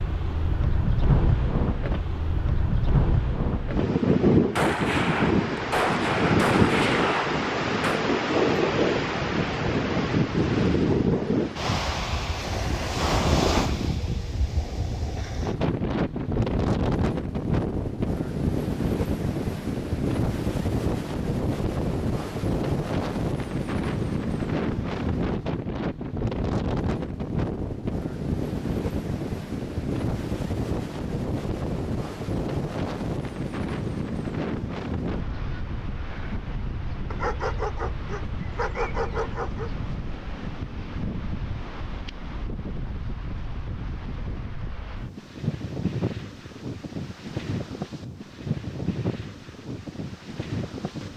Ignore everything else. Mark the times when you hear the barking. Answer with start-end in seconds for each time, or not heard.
37.1-39.7.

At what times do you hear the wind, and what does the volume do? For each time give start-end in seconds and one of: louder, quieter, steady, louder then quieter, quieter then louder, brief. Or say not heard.
0.0-51.1 quieter.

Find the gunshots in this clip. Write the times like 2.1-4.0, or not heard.
4.5-8.0.